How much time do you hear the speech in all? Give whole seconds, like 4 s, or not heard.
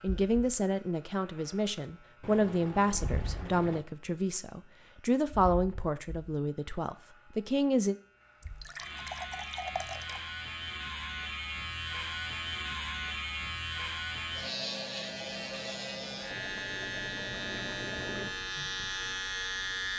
8 s.